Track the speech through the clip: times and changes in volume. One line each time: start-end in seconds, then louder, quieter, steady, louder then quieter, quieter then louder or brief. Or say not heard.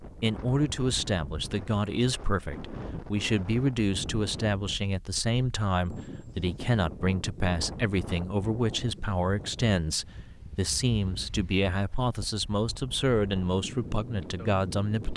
0.0-15.1 steady.